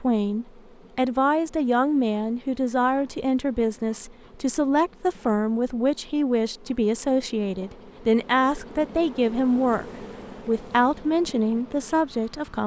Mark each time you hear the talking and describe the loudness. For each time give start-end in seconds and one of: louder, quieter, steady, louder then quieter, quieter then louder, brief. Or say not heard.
0.0-12.6 steady.